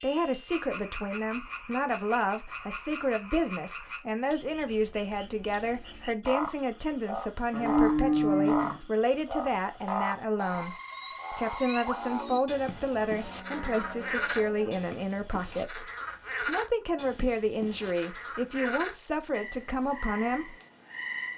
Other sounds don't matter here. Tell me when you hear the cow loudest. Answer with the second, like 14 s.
8 s.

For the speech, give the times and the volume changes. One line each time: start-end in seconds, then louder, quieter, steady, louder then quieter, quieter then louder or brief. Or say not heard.
0.0-20.6 steady.